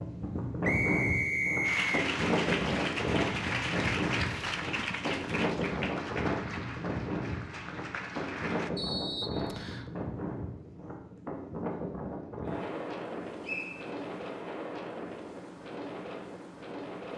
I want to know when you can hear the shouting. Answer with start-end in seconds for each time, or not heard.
not heard.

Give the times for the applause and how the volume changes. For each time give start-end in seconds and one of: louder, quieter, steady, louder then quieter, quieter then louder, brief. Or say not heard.
1.6-8.7 quieter.